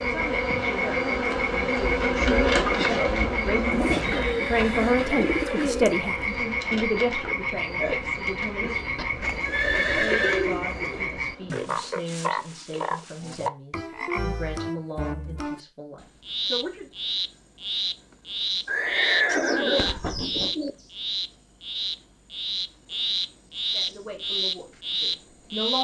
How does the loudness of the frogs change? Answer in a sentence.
The volume of the frogs stays about the same.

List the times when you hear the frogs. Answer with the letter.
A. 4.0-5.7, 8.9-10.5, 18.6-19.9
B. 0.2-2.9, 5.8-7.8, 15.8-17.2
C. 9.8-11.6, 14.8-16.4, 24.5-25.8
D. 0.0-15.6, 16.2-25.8
D.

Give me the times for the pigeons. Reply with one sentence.
The pigeons can be heard from 3.7 to 6.3 s, from 9.2 to 11.2 s and from 19.2 to 20.7 s.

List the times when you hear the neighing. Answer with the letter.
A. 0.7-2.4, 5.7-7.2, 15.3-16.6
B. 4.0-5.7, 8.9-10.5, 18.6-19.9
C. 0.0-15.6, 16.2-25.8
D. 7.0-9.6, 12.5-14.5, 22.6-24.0
B.